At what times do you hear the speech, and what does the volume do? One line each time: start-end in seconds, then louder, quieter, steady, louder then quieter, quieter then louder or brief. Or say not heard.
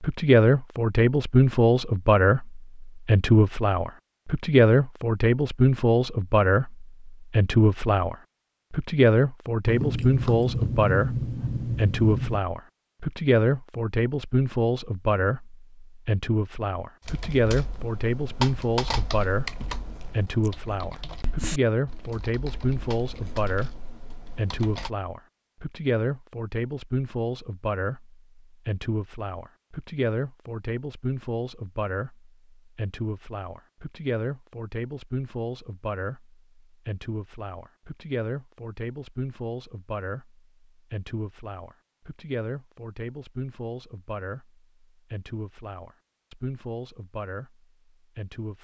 0.0-48.6 quieter.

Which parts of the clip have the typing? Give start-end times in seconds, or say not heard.
17.1-24.9.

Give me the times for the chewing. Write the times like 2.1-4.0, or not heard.
9.7-12.4.